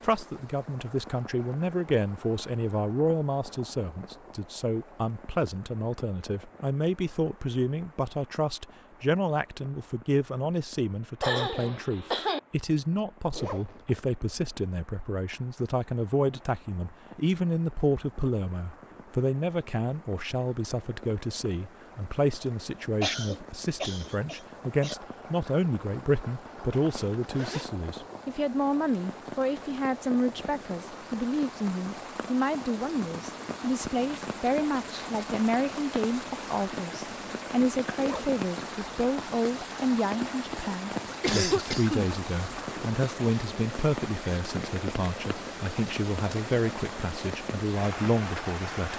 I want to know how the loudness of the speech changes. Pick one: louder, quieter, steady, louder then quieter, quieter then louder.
steady.